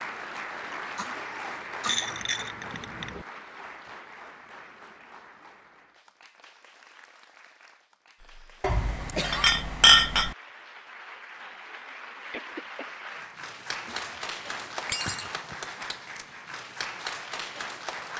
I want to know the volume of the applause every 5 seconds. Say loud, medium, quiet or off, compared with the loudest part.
loud, quiet, loud, loud.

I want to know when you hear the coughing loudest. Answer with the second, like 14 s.
9 s.